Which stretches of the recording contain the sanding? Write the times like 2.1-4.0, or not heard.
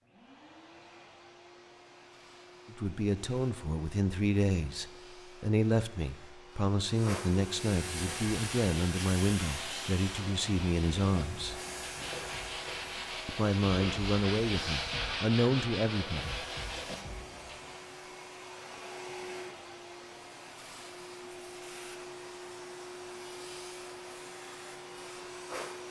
8.0-17.8.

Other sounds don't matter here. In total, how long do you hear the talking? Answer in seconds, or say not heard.
12 s.